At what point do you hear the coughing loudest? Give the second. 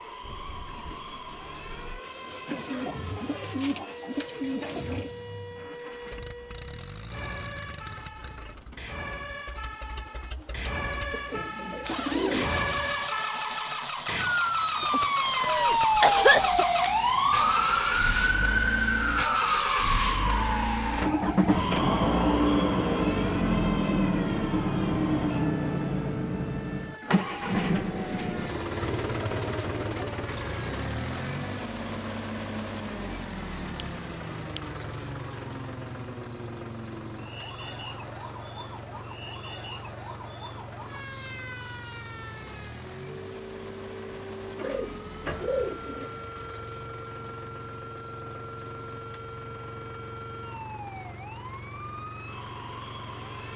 16 s.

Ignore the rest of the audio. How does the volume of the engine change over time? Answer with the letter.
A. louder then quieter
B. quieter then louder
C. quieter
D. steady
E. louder
A.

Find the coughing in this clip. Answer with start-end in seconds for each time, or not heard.
14.8-16.6.